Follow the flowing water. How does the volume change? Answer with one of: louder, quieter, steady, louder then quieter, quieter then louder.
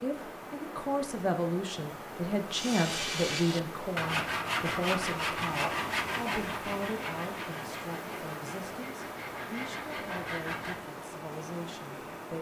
steady.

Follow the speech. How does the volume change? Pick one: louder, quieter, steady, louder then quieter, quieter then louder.
quieter.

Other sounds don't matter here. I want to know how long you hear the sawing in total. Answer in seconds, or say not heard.
8 s.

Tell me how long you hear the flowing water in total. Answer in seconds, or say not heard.
12 s.